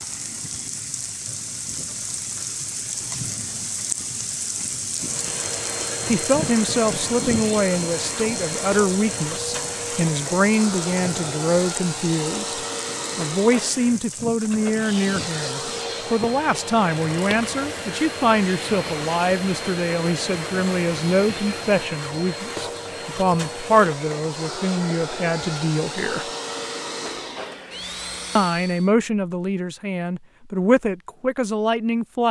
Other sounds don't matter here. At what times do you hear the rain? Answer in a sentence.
The rain can be heard from 0.0 to 21.9 s.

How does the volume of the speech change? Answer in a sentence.
The loudness of the speech stays about the same.